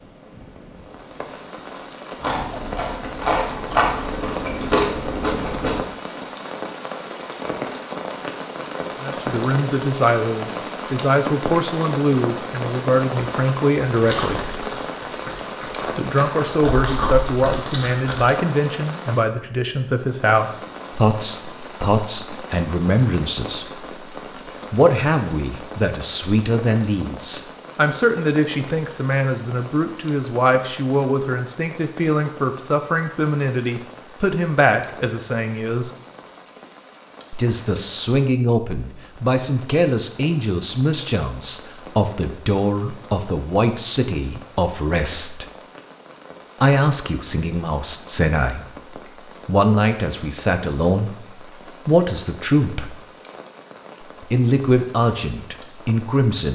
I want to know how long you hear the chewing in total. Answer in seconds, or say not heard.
8 s.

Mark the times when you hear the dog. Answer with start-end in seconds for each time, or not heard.
not heard.